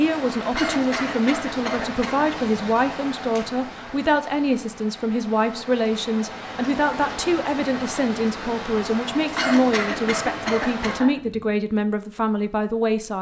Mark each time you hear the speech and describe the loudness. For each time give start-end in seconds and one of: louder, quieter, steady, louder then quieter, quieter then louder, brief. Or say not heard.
0.0-13.1 steady.